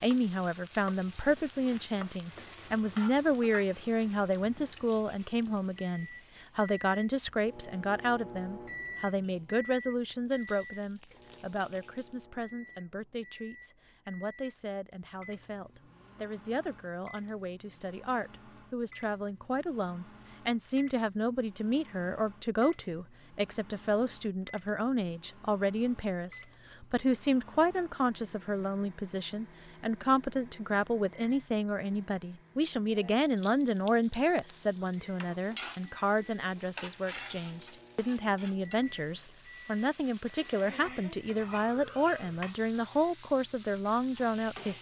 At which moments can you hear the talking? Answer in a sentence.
You can hear the talking from 0.0 to 44.7 s.